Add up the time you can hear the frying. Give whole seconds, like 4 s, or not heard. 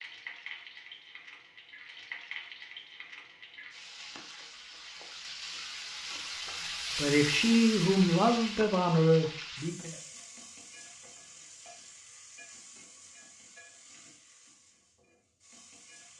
16 s.